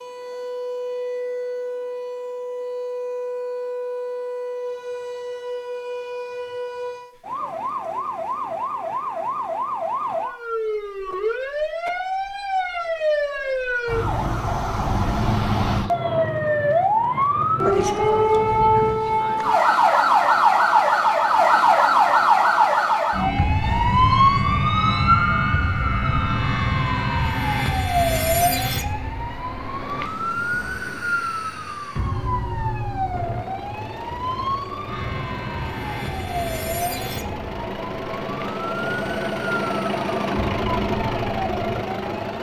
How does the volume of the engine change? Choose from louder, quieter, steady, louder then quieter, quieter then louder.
louder.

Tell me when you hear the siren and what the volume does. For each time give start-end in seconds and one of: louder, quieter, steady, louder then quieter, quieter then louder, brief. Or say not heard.
0.0-42.3 louder then quieter.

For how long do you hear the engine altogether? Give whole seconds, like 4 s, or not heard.
9 s.